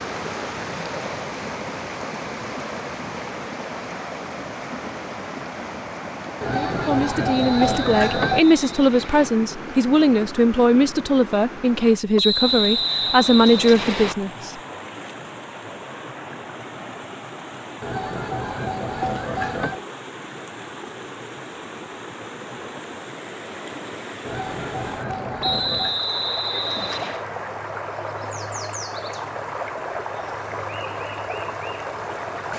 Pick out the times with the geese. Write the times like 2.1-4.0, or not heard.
6.4-8.4, 17.8-19.8, 24.2-26.1.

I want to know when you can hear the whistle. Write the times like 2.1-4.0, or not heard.
7.3-9.3, 12.2-14.2, 25.4-27.2.